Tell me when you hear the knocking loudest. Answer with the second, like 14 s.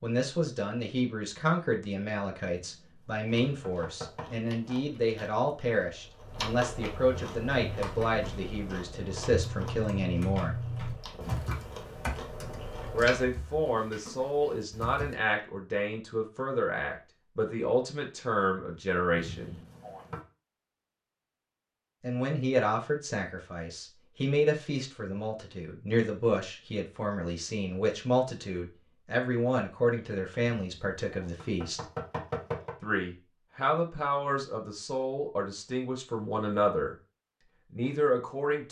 32 s.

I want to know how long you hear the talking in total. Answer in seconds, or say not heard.
32 s.